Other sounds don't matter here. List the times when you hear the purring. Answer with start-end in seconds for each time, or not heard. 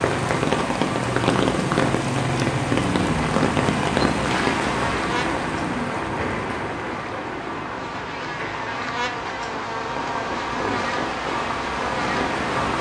not heard.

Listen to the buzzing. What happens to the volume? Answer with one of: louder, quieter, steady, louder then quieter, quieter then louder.
quieter then louder.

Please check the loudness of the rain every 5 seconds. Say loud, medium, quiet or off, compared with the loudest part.
loud, medium, medium.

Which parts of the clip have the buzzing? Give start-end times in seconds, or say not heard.
4.2-12.7.